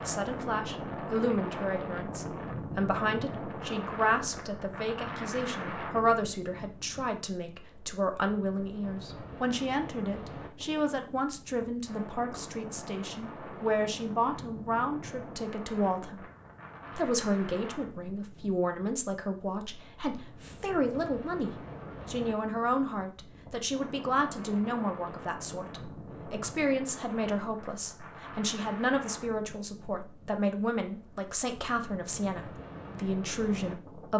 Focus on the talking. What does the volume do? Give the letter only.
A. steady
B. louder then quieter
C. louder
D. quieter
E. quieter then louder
A.